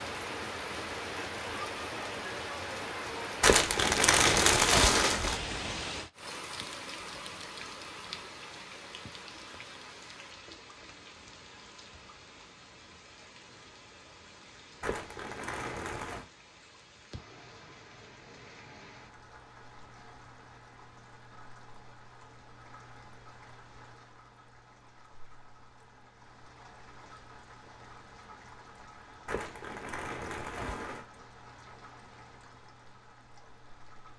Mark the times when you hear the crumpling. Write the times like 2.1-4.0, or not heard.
3.4-5.4, 14.8-16.2, 29.2-31.1.